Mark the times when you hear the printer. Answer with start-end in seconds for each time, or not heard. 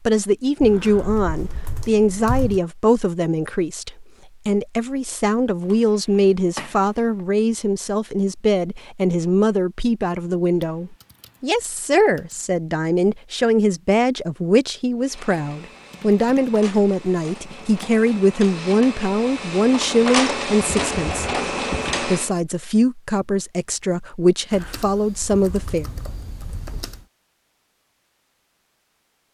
15.0-22.3.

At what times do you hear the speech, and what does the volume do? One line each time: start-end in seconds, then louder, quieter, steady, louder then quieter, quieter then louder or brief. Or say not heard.
0.1-25.9 steady.